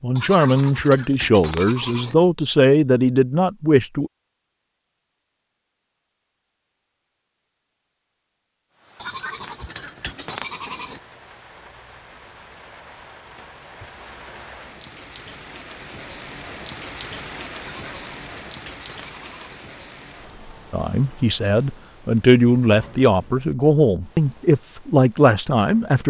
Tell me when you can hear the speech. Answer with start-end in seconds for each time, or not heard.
0.0-4.1, 20.7-26.0.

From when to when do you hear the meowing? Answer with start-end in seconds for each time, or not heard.
not heard.